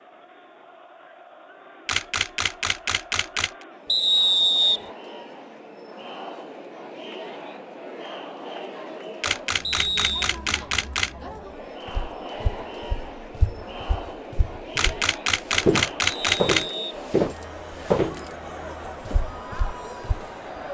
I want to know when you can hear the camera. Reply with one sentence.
The camera can be heard from 1.9 to 3.6 s, from 9.2 to 11.2 s and from 14.8 to 16.6 s.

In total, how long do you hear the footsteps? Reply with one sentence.
The footsteps can be heard for 8 seconds in total.